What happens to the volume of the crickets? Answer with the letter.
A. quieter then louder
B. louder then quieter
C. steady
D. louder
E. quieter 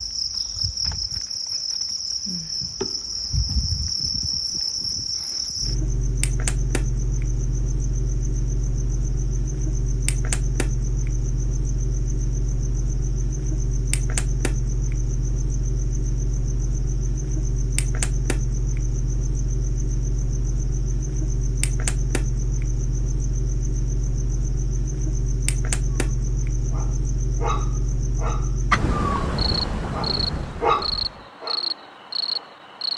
C.